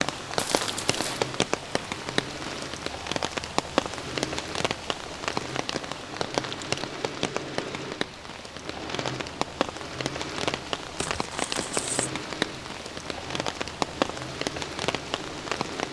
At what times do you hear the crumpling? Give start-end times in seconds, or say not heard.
0.3-1.2, 10.9-12.1.